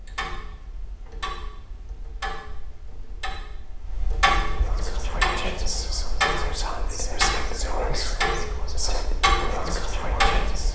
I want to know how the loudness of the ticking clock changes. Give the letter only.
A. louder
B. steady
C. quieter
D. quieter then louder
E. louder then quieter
A.